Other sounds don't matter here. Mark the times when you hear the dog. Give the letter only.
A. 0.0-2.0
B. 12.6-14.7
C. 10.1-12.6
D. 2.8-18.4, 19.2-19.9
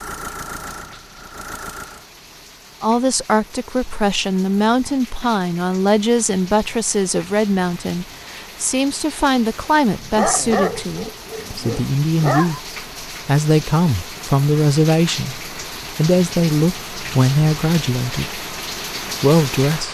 C.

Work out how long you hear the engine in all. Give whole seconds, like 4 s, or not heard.
2 s.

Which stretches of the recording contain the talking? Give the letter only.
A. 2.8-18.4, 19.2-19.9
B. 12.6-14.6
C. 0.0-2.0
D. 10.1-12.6
A.